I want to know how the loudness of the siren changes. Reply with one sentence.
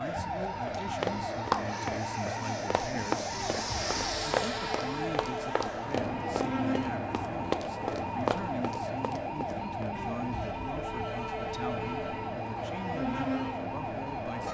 The volume of the siren stays about the same.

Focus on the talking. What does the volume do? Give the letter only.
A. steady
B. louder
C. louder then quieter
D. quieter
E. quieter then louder
A.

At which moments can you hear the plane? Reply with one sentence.
The plane can be heard from 0.0 to 14.4 s.